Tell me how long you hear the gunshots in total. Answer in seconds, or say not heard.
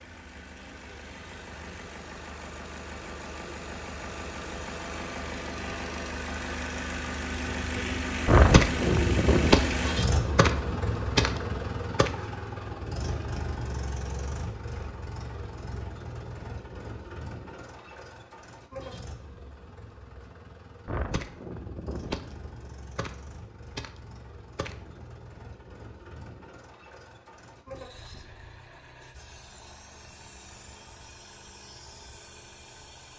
8 s.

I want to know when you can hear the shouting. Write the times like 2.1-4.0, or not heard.
not heard.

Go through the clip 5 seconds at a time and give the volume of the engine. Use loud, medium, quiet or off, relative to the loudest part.
medium, loud, loud, medium, quiet, quiet, quiet.